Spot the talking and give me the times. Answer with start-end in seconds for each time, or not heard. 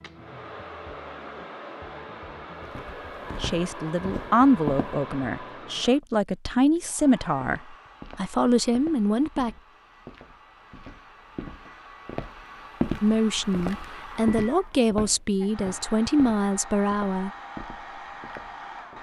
3.4-9.5, 13.0-17.3.